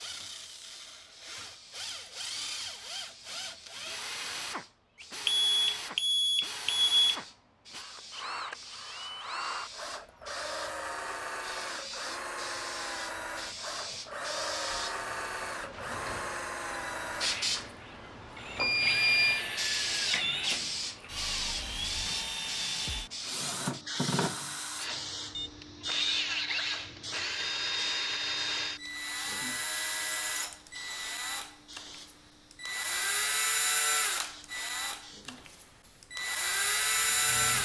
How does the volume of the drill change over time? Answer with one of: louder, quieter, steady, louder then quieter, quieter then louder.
louder.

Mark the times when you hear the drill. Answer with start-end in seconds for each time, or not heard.
0.0-37.5.